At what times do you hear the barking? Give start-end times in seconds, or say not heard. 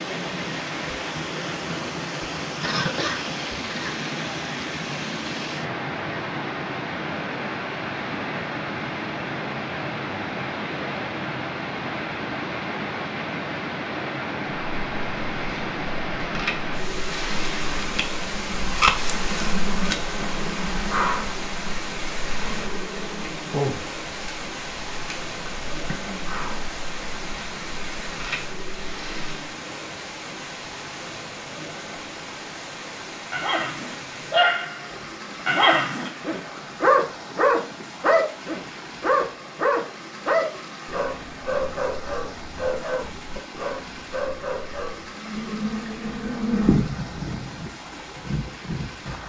33.3-45.1.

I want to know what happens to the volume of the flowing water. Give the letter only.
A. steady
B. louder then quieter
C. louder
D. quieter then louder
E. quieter
E.